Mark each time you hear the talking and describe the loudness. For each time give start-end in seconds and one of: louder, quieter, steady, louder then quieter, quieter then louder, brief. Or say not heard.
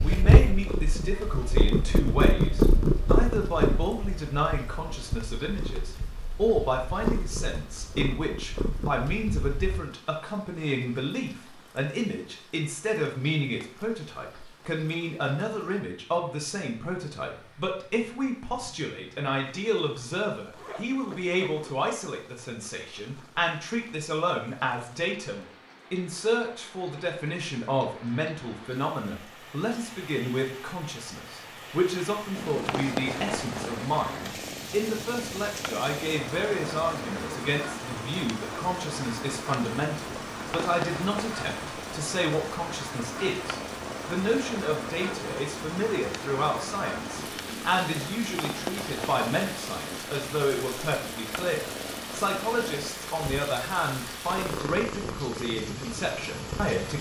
0.0-56.9 steady.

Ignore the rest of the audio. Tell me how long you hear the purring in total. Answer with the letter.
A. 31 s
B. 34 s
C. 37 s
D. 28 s
B.